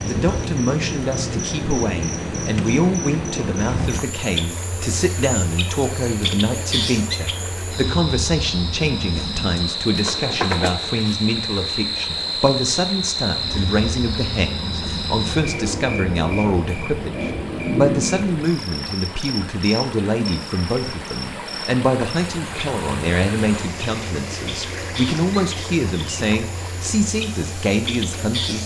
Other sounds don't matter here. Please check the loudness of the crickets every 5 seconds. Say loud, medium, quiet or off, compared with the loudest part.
loud, loud, loud, loud, medium, medium.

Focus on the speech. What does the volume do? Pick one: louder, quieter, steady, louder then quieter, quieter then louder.
steady.